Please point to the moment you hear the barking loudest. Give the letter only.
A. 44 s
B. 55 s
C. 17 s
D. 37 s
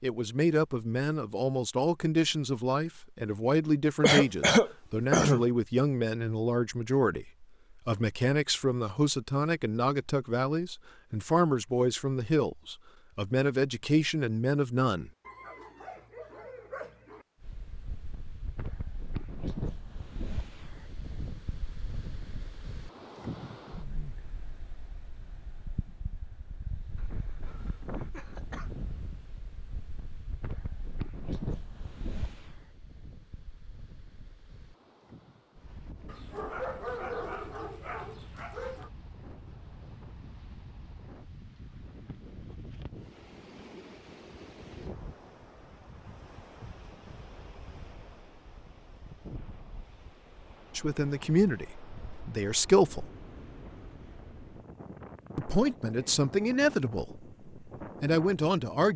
D.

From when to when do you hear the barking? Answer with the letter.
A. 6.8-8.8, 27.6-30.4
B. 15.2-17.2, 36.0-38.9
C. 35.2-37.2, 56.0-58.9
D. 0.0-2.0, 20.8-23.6
B.